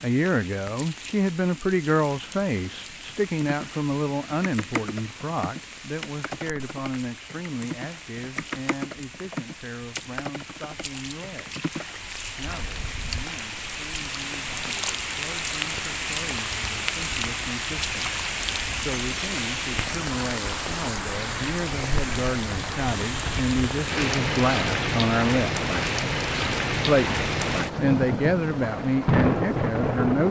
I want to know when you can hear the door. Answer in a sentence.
You can't hear the door here.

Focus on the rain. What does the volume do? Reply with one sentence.
The volume of the rain goes up.